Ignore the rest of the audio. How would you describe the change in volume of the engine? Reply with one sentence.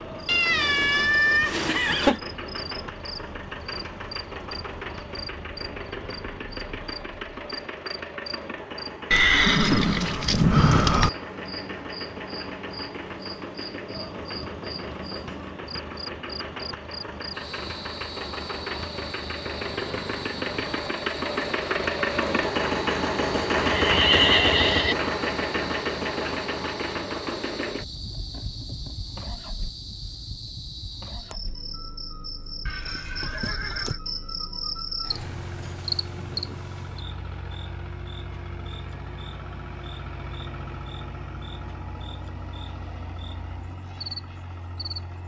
The volume of the engine goes up, then down.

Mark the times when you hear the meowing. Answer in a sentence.
The meowing can be heard from 0.2 to 2.2 s.